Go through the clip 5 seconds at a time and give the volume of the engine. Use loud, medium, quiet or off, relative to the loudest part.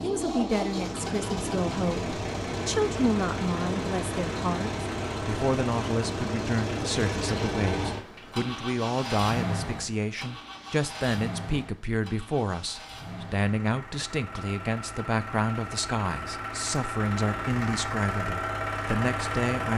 loud, loud, medium, loud.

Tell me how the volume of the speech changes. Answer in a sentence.
The volume of the speech stays about the same.